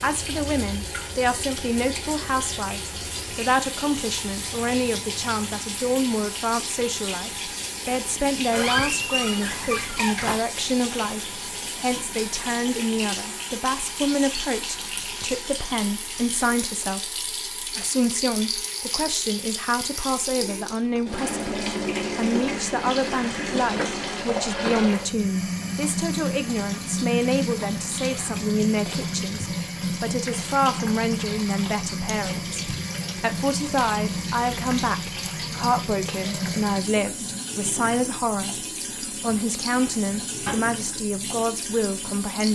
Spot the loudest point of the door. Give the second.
9 s.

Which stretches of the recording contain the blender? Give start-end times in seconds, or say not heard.
not heard.